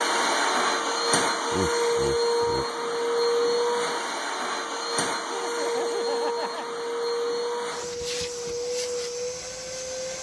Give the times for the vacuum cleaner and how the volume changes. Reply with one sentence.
The vacuum cleaner can be heard from 0.0 to 10.1 s, getting quieter.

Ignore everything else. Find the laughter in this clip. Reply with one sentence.
The laughter can be heard from 1.5 to 2.6 s and from 5.2 to 6.7 s.